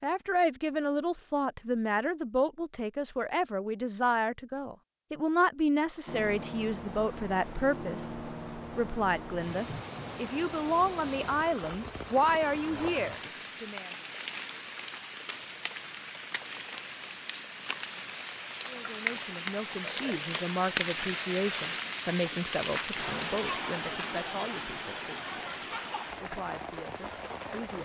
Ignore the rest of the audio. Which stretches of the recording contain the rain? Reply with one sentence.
You can hear the rain from 6.0 to 27.7 s.